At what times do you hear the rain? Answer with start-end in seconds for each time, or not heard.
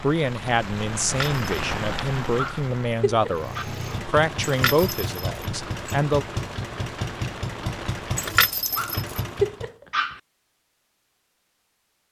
0.0-8.3.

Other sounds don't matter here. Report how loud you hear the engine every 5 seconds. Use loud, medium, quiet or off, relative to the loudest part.
loud, loud, off.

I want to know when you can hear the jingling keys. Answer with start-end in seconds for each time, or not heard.
1.0-1.4, 4.4-6.0, 8.2-9.2.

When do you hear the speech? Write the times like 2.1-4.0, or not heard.
0.0-6.2.